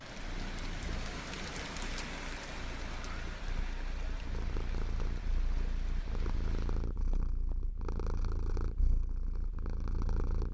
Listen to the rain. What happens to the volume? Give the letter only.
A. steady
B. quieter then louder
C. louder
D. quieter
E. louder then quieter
D.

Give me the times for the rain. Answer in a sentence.
The rain can be heard from 0.0 to 6.9 s.